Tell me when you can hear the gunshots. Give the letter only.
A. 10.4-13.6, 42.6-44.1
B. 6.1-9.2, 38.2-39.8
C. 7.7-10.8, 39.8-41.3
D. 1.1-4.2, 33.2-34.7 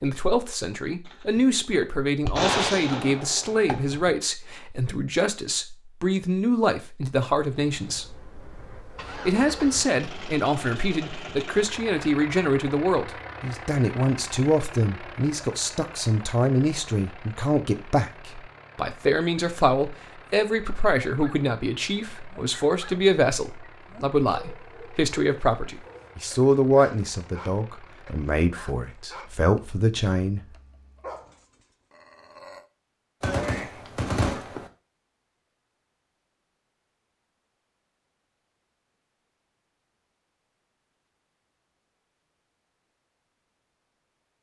D.